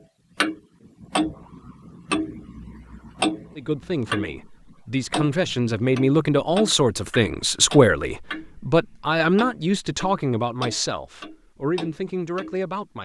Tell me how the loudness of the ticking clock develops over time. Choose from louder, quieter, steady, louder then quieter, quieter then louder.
quieter.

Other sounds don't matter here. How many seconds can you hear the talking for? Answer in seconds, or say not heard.
9 s.